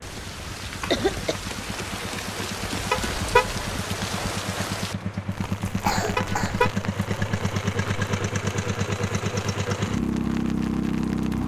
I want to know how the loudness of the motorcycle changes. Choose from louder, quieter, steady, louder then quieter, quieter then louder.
louder.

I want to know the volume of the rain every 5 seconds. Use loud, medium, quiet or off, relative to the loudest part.
loud, medium, medium.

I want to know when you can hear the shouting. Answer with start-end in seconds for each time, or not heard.
not heard.